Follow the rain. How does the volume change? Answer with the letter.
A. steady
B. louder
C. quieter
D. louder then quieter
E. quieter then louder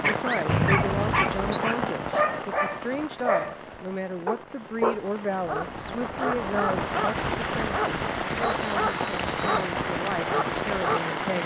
E.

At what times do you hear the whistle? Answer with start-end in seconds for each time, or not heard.
0.5-1.6, 8.4-9.7.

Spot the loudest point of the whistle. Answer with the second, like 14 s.
1 s.